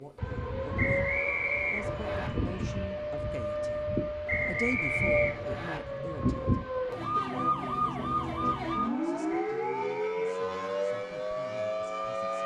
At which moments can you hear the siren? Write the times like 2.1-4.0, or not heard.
0.0-12.4.